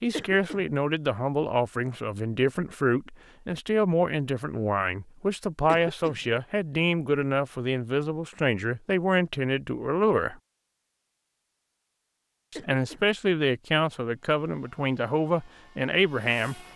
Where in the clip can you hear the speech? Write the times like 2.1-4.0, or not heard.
0.0-10.3, 12.5-16.6.